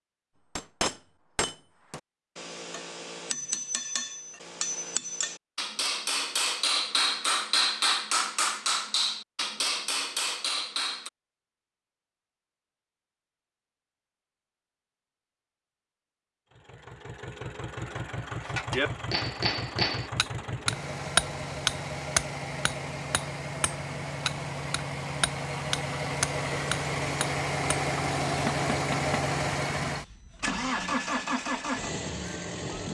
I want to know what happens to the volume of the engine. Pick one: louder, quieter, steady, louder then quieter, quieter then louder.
louder.